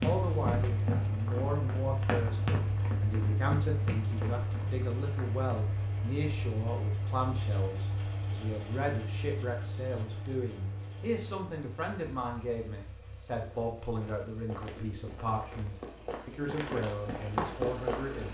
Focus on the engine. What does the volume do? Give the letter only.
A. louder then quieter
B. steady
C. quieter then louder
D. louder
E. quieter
E.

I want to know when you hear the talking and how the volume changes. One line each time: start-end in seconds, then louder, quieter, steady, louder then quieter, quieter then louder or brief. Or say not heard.
0.0-18.2 steady.